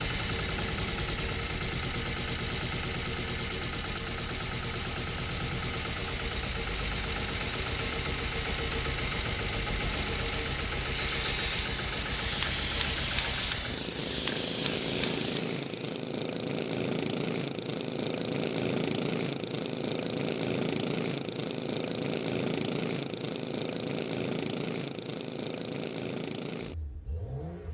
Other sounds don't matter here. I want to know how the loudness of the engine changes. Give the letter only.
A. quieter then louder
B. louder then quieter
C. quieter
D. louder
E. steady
E.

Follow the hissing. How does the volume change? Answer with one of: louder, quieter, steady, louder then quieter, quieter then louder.
louder.